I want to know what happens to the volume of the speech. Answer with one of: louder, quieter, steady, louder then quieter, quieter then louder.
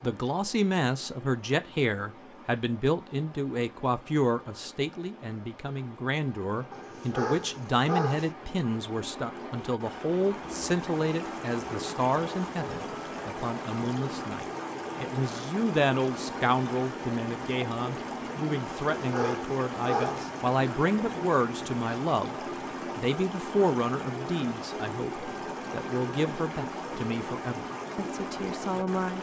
steady.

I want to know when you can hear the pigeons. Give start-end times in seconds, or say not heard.
not heard.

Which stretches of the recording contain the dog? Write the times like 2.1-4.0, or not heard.
6.7-8.3, 18.9-20.3.